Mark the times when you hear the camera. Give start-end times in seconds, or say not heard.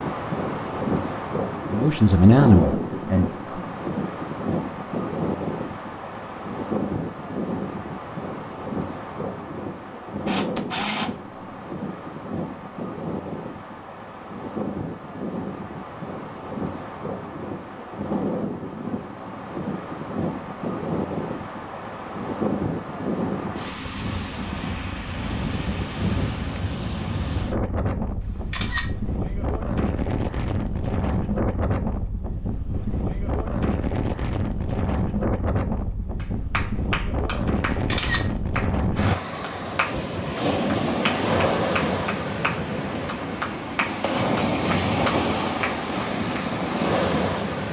10.2-11.1, 28.2-28.9, 37.5-38.4.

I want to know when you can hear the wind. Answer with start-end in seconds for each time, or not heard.
0.0-47.6.